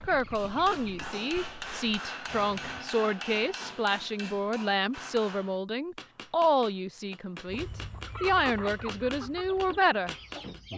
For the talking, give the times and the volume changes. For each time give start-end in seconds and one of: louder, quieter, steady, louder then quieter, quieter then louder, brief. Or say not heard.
0.0-10.2 steady.